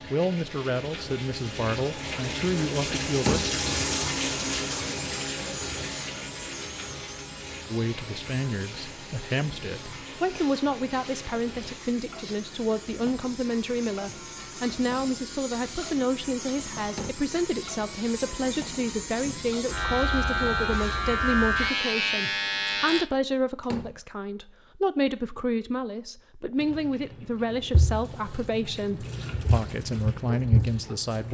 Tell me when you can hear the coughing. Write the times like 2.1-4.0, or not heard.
not heard.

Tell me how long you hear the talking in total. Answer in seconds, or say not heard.
27 s.